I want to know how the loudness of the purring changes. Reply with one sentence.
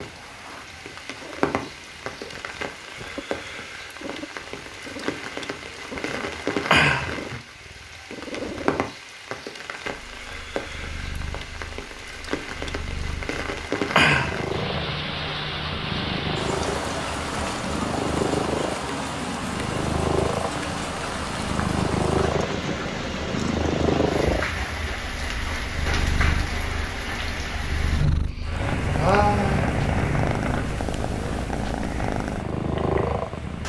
The loudness of the purring goes up.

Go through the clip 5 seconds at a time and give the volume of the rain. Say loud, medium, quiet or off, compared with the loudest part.
medium, loud, loud, loud, loud, loud, medium.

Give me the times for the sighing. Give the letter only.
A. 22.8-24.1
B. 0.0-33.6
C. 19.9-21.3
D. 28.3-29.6
D.